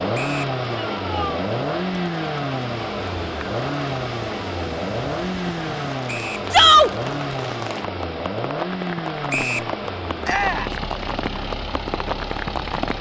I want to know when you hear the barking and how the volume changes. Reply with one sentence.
The barking can't be heard in this clip.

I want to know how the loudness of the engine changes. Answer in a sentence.
The loudness of the engine goes down.